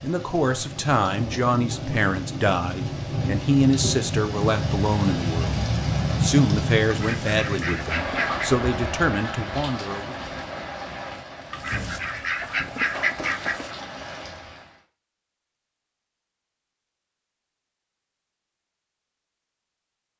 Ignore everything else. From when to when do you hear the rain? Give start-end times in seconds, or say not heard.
0.0-14.8.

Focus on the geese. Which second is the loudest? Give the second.
13 s.